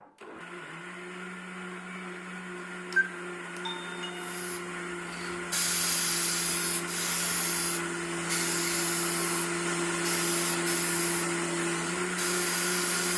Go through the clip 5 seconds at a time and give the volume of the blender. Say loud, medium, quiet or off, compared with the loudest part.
medium, loud, loud.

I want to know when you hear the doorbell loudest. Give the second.
3 s.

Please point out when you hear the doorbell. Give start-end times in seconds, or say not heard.
2.9-4.5.